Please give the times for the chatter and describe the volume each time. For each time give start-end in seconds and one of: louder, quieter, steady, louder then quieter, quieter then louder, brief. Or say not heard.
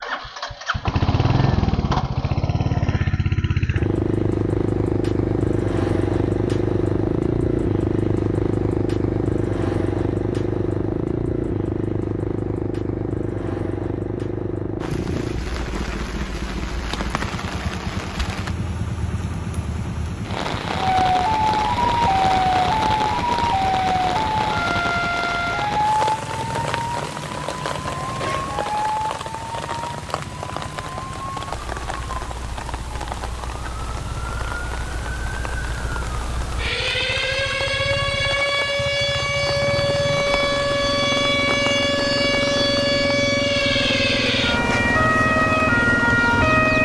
not heard.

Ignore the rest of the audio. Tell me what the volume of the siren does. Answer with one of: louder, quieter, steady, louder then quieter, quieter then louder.
quieter then louder.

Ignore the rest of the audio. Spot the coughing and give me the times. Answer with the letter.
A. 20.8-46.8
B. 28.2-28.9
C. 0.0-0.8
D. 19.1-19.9
B.